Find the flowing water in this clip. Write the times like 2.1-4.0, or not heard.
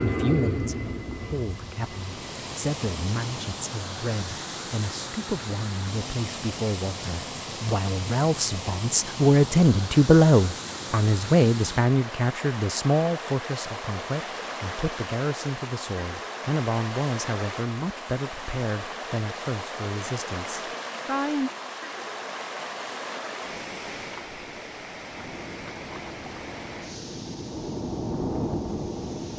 0.0-29.3.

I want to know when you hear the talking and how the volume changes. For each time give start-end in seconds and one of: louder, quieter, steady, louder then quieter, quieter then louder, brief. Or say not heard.
0.0-21.5 louder then quieter.